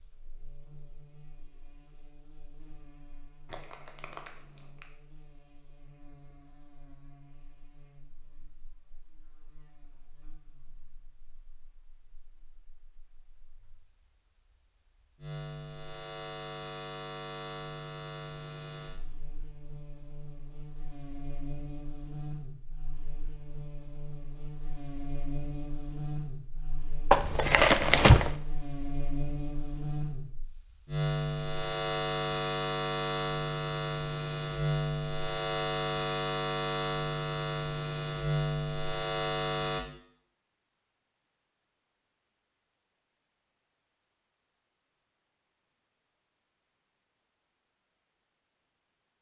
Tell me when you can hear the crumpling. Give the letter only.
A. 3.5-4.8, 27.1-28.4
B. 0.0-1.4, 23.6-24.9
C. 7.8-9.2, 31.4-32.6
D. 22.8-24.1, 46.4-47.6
A.